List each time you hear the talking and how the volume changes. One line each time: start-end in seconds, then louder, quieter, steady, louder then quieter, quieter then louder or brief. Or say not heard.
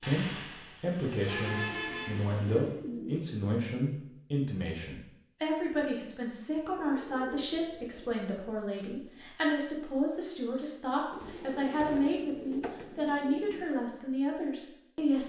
0.0-15.2 steady.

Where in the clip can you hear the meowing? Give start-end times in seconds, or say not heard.
not heard.